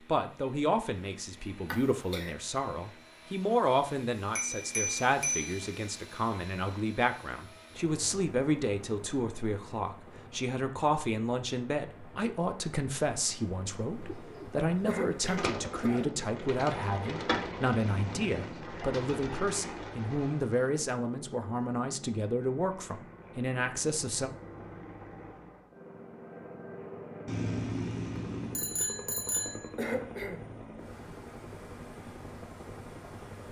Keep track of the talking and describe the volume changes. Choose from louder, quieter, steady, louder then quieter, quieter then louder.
steady.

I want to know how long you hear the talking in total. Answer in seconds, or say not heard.
24 s.